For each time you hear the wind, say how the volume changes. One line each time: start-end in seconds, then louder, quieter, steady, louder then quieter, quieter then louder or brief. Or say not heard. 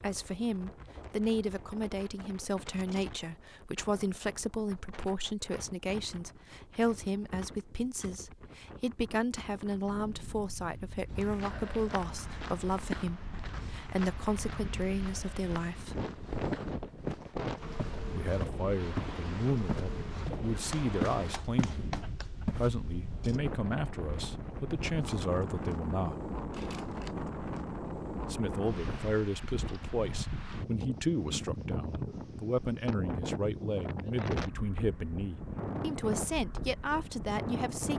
0.0-37.9 louder.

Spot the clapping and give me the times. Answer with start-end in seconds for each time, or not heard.
20.7-22.3.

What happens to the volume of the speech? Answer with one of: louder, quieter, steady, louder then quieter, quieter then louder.
steady.